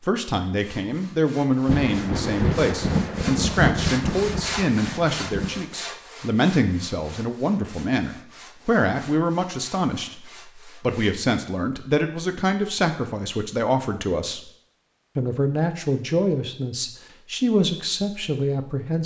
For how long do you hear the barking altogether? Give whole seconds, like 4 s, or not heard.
not heard.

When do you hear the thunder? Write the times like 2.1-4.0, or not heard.
1.6-5.6.